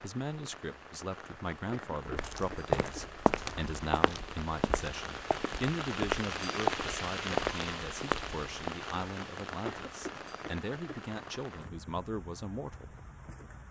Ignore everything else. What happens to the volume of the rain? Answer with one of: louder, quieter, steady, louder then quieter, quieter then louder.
louder then quieter.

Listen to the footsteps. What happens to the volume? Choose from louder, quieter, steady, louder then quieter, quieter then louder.
quieter then louder.